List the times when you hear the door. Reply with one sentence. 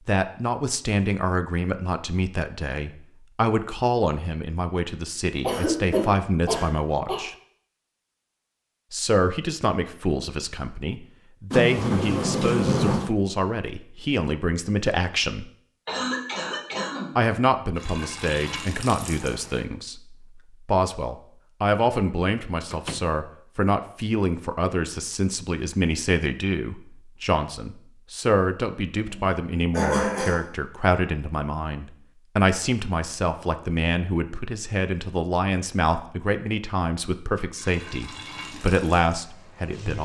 You can hear the door from 11.5 to 13.2 s and from 22.7 to 23.1 s.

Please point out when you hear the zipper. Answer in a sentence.
The zipper can't be heard in this clip.